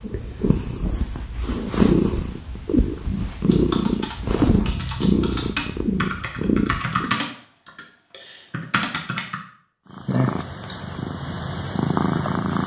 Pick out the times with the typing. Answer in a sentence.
The typing can be heard from 3.5 to 9.3 s.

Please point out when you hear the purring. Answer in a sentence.
The purring can be heard from 0.0 to 7.2 s and from 9.9 to 12.6 s.